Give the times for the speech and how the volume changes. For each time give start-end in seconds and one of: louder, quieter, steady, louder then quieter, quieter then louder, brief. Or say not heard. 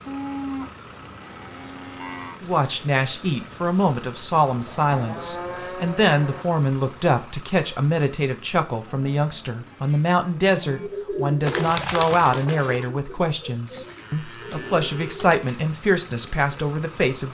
2.4-17.3 steady.